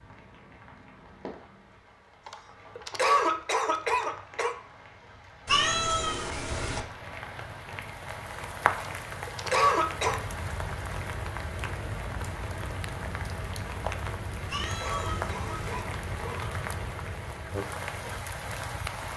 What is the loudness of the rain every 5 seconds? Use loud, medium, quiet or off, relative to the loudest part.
quiet, loud, loud, loud.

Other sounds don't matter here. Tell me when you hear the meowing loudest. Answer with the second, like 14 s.
6 s.